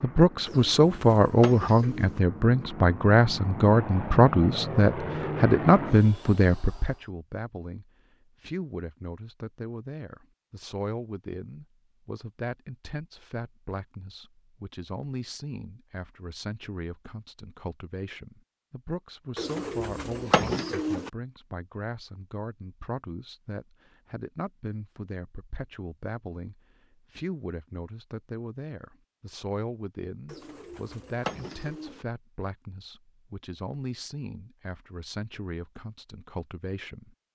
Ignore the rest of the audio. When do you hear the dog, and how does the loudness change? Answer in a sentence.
You can't hear the dog here.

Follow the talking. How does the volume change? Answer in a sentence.
The loudness of the talking goes down.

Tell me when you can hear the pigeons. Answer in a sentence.
You can hear the pigeons from 0.5 to 2.2 s, from 19.4 to 21.1 s and from 30.2 to 32.0 s.